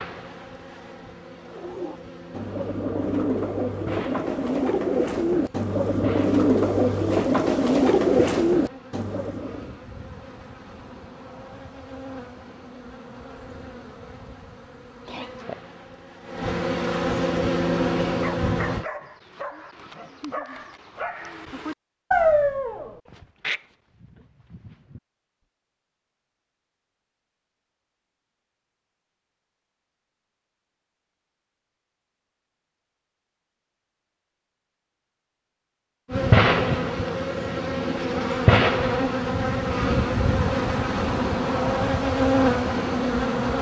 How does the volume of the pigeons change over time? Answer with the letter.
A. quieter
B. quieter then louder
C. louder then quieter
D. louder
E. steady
D.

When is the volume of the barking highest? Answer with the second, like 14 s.
22 s.